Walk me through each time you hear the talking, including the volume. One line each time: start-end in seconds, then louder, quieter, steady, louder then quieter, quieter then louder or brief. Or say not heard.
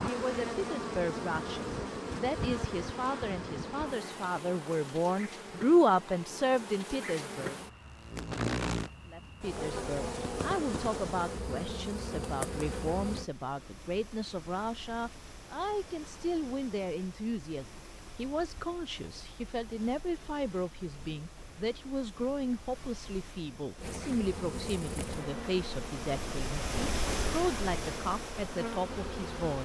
0.0-7.5 louder
9.1-29.6 steady.